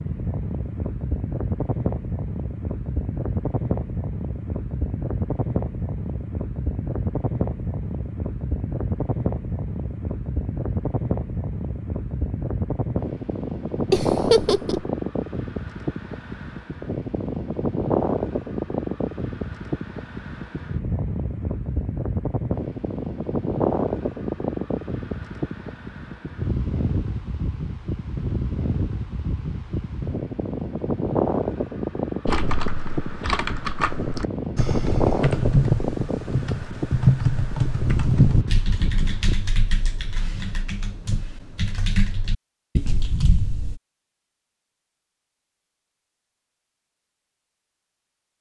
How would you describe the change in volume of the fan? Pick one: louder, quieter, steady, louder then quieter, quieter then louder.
steady.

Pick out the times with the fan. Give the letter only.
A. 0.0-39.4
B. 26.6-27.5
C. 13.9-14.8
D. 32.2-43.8
A.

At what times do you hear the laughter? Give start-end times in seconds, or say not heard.
13.9-14.8.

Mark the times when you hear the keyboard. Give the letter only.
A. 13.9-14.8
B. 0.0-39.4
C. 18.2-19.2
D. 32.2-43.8
D.